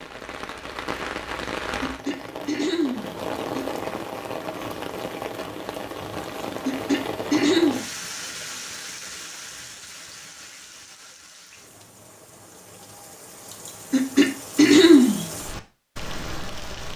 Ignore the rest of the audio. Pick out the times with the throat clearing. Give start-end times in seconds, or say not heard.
1.8-3.6, 6.7-7.8, 13.9-15.3.